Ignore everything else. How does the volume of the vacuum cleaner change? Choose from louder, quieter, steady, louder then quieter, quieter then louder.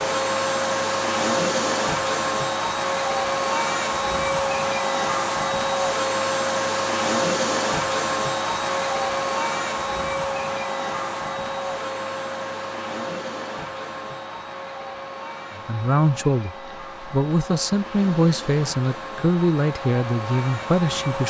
quieter.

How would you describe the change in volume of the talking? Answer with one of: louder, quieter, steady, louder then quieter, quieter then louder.
steady.